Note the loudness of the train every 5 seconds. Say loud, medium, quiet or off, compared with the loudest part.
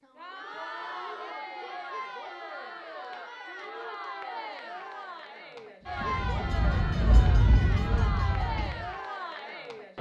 off, loud.